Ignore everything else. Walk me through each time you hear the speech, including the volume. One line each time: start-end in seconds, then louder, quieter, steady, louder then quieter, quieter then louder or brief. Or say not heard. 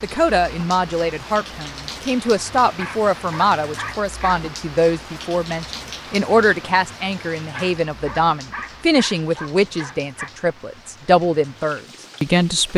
0.0-12.7 steady.